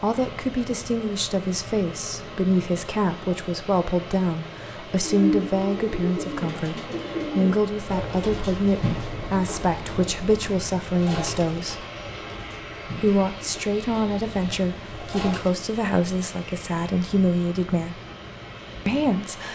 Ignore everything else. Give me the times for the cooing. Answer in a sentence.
You can hear the cooing from 5.0 to 15.6 s.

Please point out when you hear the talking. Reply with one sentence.
The talking can be heard from 0.0 to 11.8 s, from 13.0 to 18.0 s and from 18.9 to 19.5 s.